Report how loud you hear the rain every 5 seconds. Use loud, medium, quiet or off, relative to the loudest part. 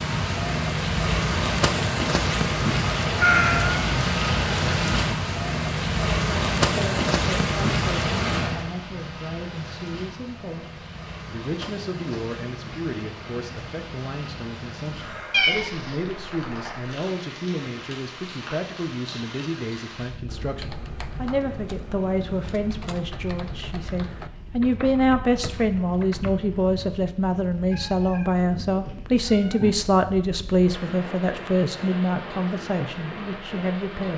loud, loud, quiet, quiet, quiet, quiet, quiet.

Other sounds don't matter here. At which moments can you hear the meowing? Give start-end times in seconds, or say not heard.
3.1-3.9, 15.3-15.9, 27.7-29.7.